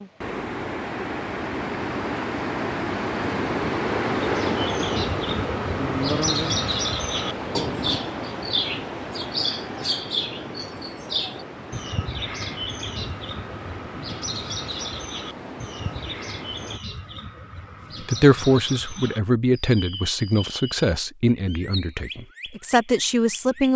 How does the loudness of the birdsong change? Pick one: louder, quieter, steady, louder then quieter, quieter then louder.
quieter.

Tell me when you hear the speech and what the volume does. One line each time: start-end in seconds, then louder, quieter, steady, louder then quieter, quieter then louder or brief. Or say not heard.
18.0-23.7 quieter then louder.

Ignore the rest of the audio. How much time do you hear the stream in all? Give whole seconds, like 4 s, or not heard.
17 s.